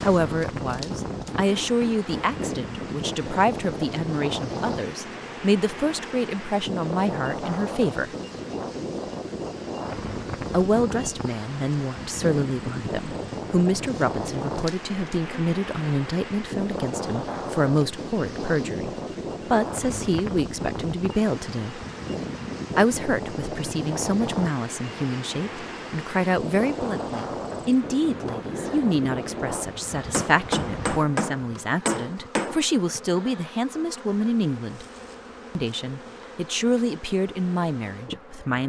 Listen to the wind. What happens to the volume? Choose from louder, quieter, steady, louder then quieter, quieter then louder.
steady.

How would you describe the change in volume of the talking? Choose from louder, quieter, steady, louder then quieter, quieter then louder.
steady.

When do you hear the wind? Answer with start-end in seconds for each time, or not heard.
0.0-31.0.